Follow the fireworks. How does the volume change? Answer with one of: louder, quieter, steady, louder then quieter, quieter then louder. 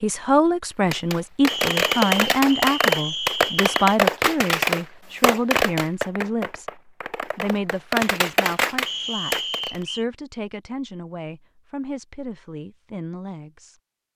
quieter then louder.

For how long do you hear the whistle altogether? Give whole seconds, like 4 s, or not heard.
4 s.